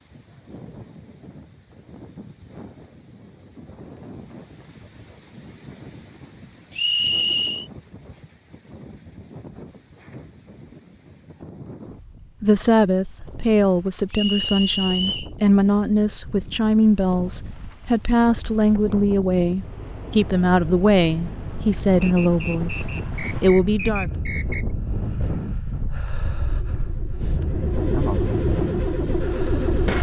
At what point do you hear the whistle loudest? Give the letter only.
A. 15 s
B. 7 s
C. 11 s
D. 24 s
B.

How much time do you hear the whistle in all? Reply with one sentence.
The whistle can be heard for 5 seconds in total.